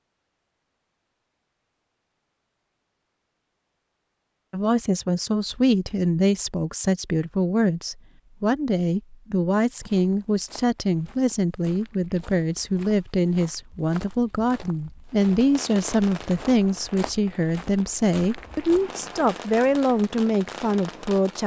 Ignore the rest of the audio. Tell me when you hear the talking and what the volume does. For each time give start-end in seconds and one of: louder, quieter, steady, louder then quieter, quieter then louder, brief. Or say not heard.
4.5-21.4 steady.